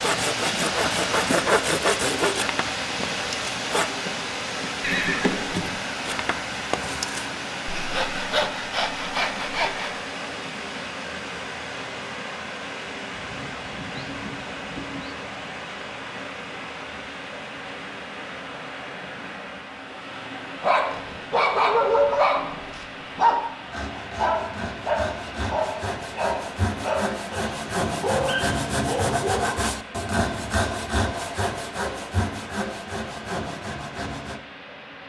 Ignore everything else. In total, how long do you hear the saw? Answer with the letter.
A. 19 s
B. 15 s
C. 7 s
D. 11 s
A.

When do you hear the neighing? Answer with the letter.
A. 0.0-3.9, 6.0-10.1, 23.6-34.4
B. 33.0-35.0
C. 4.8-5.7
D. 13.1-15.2
C.